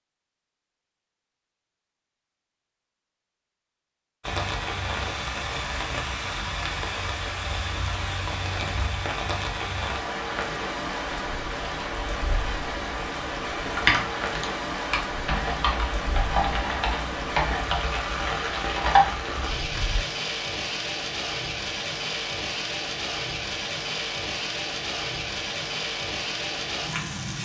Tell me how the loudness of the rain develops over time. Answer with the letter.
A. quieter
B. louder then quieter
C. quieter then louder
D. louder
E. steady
E.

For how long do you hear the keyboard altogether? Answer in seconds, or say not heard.
6 s.